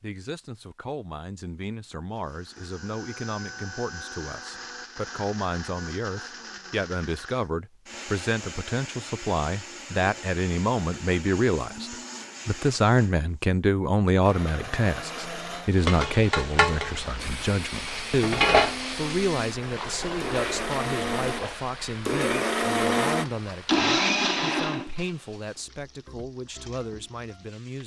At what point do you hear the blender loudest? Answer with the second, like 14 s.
24 s.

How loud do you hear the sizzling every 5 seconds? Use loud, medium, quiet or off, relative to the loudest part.
off, off, off, loud, medium, quiet.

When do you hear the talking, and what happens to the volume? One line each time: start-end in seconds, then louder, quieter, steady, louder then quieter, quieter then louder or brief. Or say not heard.
0.0-27.8 louder then quieter.